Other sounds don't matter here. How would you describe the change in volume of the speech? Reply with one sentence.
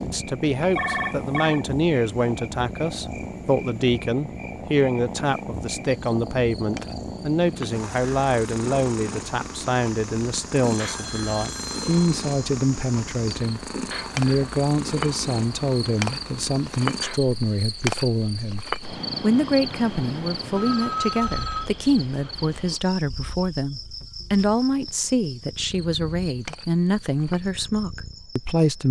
The volume of the speech stays about the same.